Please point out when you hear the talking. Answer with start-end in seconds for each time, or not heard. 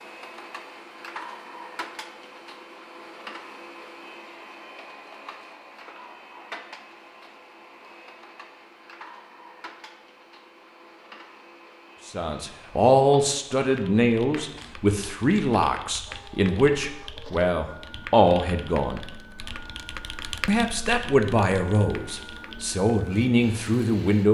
12.1-19.0, 20.4-24.2.